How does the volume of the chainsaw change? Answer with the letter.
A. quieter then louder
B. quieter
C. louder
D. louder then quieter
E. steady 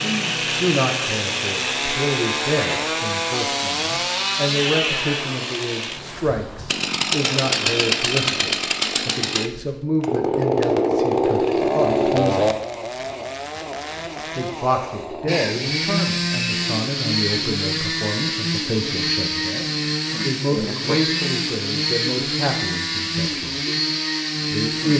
E.